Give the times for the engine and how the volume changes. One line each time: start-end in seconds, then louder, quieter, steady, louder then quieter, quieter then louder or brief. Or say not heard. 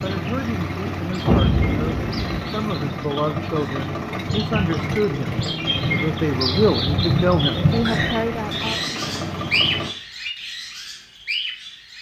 0.0-9.9 steady.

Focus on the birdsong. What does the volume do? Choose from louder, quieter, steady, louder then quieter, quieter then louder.
louder.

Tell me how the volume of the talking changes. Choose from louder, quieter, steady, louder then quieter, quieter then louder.
louder.